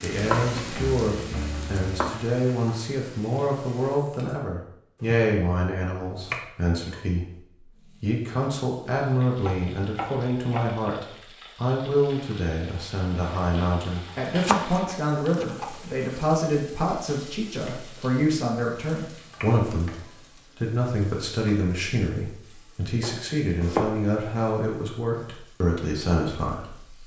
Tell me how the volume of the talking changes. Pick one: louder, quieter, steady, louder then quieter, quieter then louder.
steady.